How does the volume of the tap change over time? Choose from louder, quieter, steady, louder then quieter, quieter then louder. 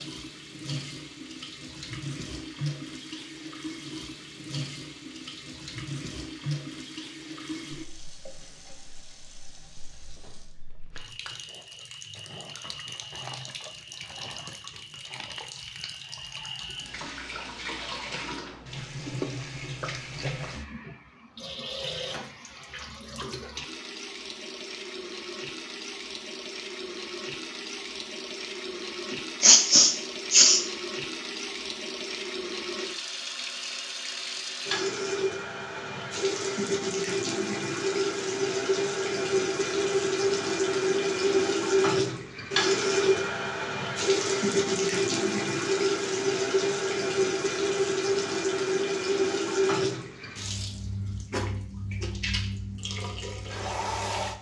louder.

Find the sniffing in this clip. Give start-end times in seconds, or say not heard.
29.4-30.6.